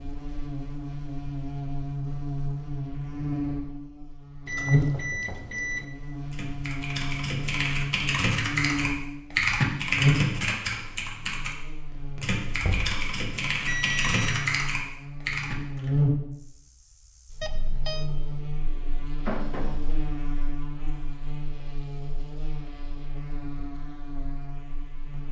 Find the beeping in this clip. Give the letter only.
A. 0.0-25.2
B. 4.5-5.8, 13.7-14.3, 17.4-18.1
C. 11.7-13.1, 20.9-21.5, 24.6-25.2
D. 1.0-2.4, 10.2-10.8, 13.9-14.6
B.